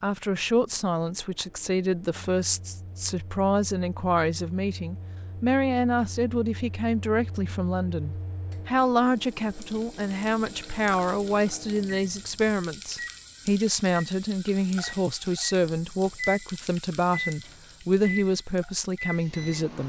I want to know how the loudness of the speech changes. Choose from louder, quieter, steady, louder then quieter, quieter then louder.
steady.